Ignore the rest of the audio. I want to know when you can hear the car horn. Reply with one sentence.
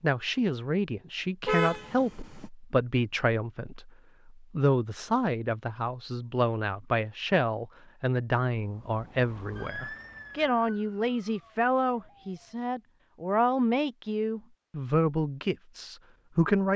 You can hear the car horn from 1.4 to 2.5 s.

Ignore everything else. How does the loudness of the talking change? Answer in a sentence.
The loudness of the talking stays about the same.